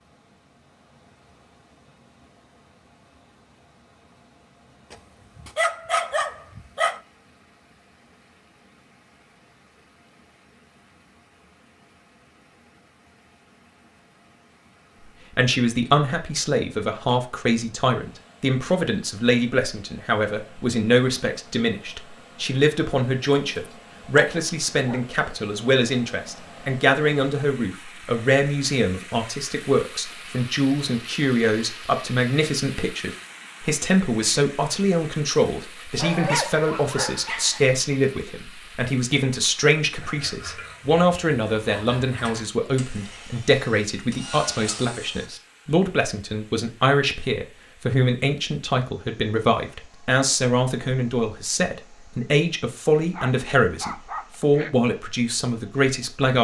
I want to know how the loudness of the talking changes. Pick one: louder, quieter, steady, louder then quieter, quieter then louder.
steady.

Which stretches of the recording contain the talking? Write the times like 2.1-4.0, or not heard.
15.3-56.3.